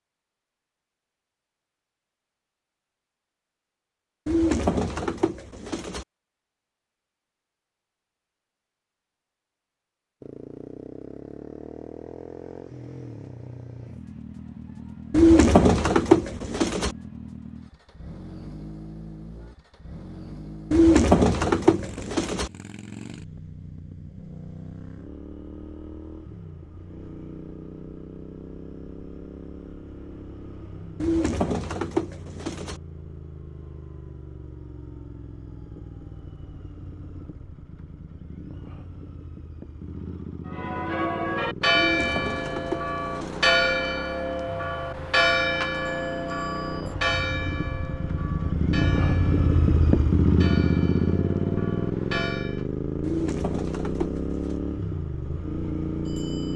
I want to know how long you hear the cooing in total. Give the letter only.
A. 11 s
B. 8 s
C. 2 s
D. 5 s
A.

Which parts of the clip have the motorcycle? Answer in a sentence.
You can hear the motorcycle from 10.2 to 56.5 s.